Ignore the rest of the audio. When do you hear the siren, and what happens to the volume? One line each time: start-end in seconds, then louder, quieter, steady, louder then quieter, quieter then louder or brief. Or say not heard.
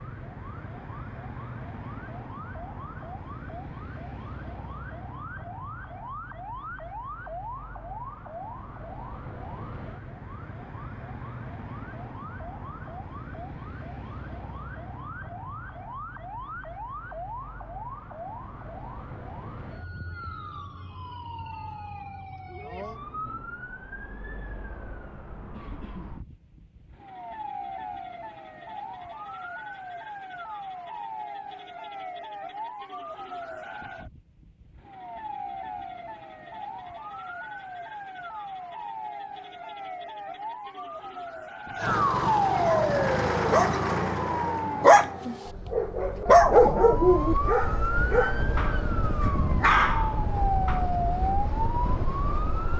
0.0-52.7 louder.